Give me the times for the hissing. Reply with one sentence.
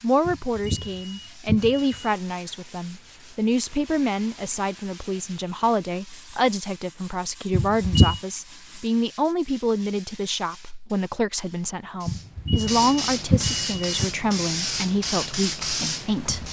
The hissing can be heard from 0.0 to 16.4 s.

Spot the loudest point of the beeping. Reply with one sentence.
The loudest moment of the beeping is at 8 seconds.